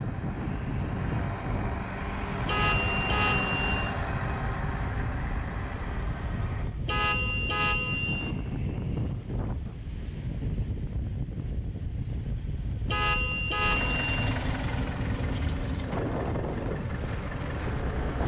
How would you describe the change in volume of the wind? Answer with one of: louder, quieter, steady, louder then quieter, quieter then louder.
steady.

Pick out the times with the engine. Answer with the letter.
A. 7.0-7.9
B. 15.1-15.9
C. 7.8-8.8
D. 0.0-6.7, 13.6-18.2
D.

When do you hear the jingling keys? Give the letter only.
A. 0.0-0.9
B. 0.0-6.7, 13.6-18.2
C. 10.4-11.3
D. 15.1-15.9
D.